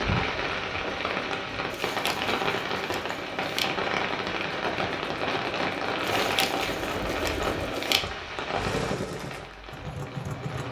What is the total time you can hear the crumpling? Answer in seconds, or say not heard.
4 s.